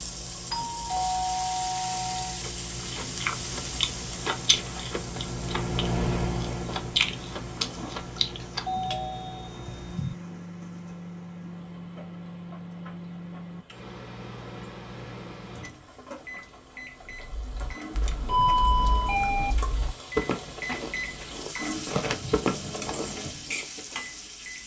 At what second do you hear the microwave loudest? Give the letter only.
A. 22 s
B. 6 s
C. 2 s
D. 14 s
B.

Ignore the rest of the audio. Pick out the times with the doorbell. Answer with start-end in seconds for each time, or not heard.
0.5-2.4, 8.7-10.2, 18.2-19.6.